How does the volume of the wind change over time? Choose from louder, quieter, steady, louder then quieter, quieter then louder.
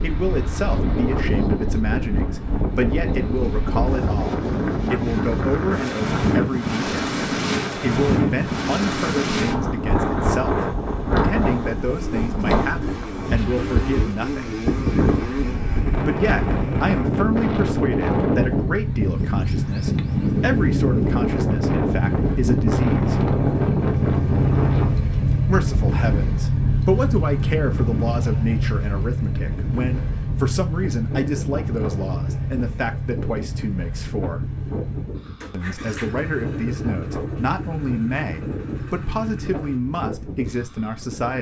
quieter.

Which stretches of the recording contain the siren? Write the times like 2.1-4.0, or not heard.
not heard.